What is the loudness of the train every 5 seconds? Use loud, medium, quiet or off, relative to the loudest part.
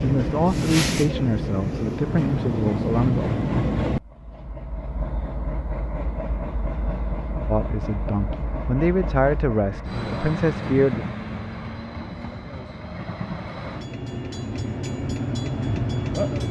loud, medium, medium, loud.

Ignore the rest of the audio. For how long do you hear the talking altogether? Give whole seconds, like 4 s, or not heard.
7 s.